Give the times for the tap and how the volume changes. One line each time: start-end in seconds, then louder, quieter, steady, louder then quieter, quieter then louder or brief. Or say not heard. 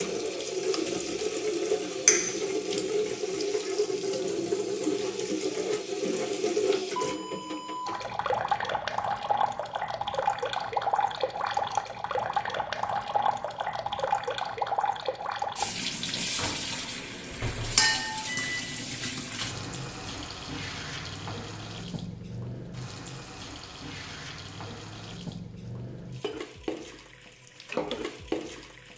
0.0-28.9 quieter.